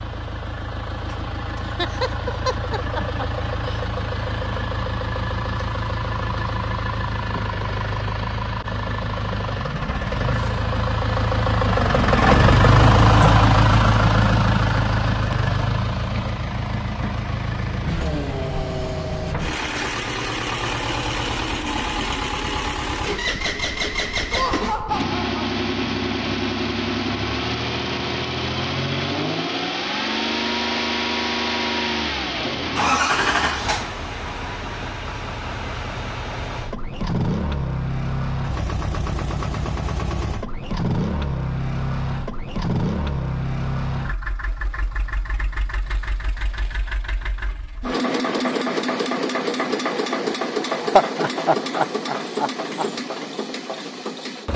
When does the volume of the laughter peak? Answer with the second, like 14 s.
51 s.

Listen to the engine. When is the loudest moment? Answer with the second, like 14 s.
13 s.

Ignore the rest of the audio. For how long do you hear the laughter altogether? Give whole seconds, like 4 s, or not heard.
6 s.